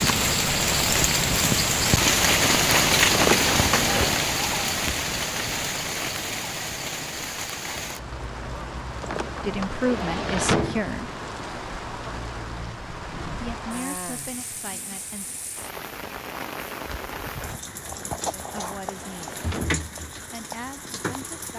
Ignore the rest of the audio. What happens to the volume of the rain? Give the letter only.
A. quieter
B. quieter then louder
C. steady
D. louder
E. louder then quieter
A.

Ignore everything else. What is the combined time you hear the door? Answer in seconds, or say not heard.
5 s.